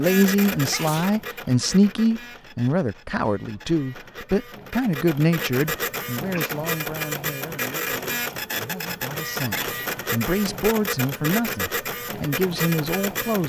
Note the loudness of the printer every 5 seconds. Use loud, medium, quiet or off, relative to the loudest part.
medium, loud, loud.